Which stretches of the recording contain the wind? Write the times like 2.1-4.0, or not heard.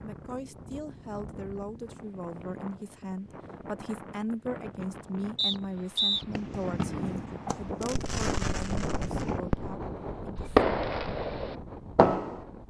0.0-12.6.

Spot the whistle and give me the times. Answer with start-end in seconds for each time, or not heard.
5.3-6.2.